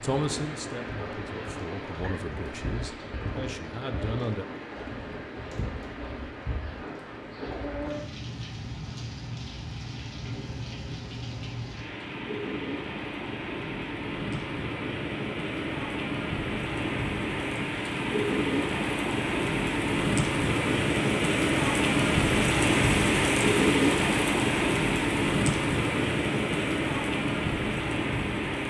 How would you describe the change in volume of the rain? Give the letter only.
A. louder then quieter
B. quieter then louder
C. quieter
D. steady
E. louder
E.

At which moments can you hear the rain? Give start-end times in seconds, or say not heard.
0.0-28.6.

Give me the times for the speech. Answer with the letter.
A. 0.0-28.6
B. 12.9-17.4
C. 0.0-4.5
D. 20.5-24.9
C.